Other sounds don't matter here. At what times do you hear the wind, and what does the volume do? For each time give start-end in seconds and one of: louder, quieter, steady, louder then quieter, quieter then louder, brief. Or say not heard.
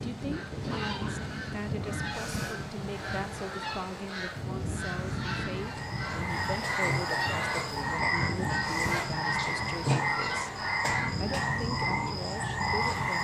0.0-13.1 steady.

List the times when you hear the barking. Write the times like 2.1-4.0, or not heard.
not heard.